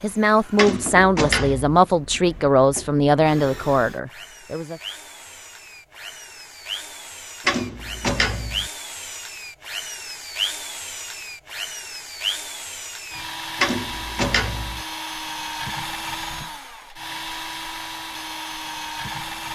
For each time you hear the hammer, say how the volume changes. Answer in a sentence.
The hammer can't be heard in this clip.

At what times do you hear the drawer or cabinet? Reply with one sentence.
The drawer or cabinet can be heard from 0.6 to 1.8 s, from 7.5 to 8.7 s and from 13.6 to 14.8 s.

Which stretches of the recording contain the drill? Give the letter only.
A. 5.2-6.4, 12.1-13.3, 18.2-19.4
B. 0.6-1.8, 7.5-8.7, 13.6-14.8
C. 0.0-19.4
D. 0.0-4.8
C.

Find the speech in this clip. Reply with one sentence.
You can hear the speech from 0.0 to 4.8 s.